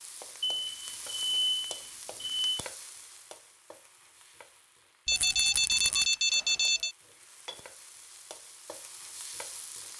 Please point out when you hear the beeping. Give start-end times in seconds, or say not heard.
0.4-2.6, 5.0-6.9.